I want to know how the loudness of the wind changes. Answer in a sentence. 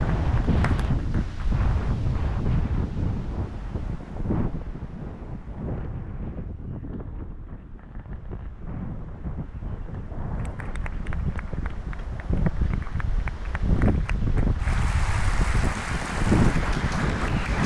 The loudness of the wind goes down, then up.